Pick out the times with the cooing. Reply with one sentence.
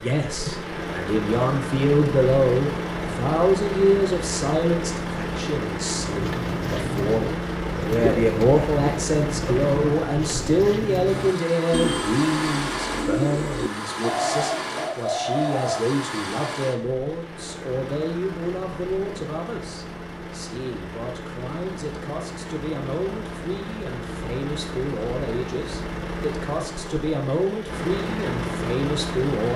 You can hear the cooing from 6.1 to 15.8 s.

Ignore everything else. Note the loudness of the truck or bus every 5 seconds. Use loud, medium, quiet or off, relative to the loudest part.
loud, loud, loud, medium, medium, loud.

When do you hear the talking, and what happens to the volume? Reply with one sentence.
You can hear the talking from 0.0 to 29.5 s, getting quieter.